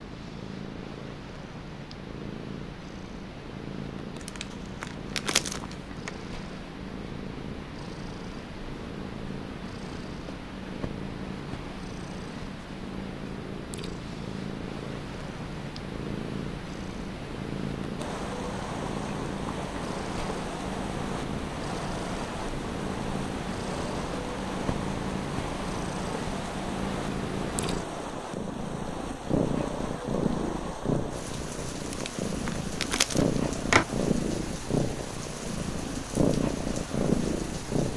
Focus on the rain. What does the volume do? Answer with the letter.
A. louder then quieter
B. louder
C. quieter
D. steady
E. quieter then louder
D.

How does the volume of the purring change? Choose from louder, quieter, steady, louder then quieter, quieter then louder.
louder.